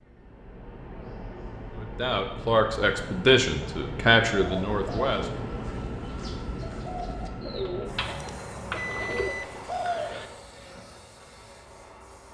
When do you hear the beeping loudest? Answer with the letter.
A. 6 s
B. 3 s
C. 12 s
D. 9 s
D.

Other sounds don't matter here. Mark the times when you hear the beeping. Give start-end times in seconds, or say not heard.
8.8-10.3.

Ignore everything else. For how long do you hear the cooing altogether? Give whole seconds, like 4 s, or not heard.
6 s.